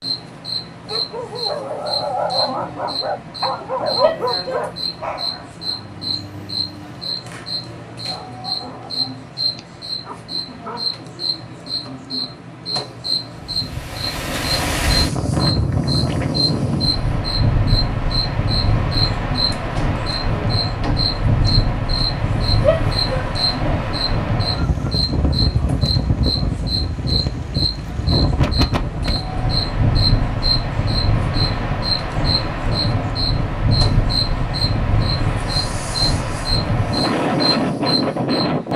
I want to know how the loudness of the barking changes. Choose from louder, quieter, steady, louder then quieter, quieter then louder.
quieter.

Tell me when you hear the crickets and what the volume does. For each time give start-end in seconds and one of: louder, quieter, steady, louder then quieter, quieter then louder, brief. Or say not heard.
0.0-38.7 steady.